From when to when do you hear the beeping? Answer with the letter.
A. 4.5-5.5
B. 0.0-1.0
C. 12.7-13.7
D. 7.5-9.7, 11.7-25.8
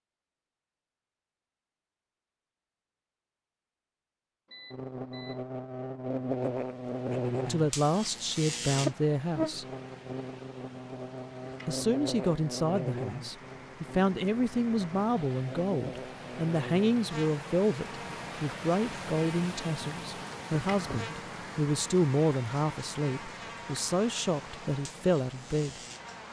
A.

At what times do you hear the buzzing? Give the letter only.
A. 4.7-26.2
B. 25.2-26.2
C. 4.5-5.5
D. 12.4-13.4
A.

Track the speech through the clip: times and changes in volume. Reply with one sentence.
The speech can be heard briefly from 7.5 to 9.7 s; and from 11.7 to 25.8 s, at a steady volume.